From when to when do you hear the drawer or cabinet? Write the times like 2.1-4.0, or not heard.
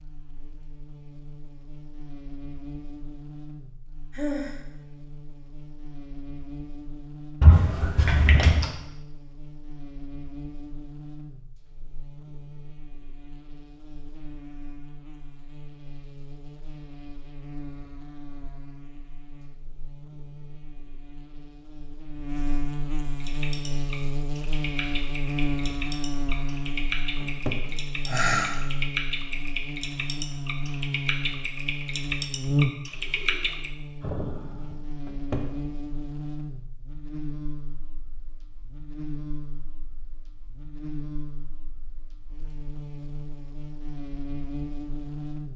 7.4-8.7, 27.2-27.6, 35.0-35.5.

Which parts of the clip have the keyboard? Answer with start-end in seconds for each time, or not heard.
23.1-33.7.